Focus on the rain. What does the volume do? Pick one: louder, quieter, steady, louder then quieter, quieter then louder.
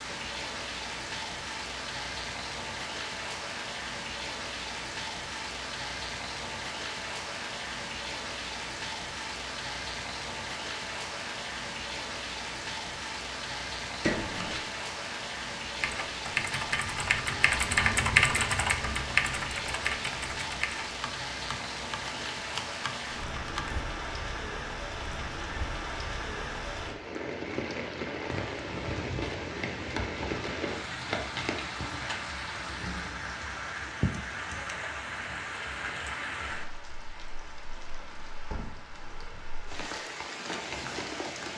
steady.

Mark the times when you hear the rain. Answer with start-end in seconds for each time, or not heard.
0.0-41.5.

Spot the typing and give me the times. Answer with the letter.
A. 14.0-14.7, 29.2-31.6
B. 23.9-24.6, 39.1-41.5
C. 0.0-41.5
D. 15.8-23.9
D.